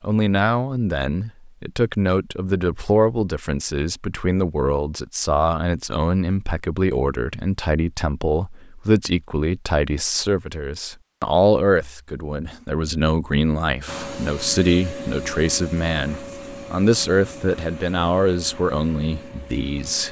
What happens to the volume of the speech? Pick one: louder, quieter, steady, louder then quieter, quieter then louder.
steady.